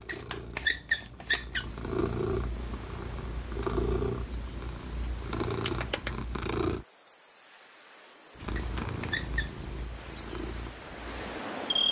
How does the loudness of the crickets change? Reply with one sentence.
The volume of the crickets goes up.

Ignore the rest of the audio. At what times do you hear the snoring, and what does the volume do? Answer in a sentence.
You can't hear the snoring here.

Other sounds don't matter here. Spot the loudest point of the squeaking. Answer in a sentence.
The loudest moment of the squeaking is at 1 second.